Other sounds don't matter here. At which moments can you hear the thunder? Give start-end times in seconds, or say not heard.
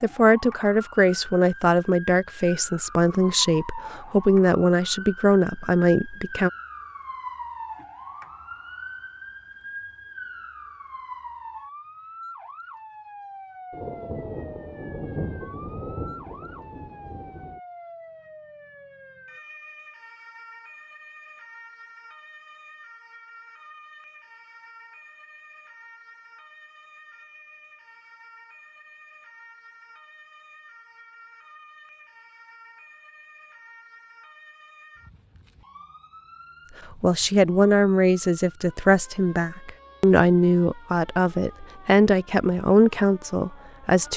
13.7-17.6.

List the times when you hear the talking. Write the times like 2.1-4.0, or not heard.
0.0-6.5, 37.0-44.1.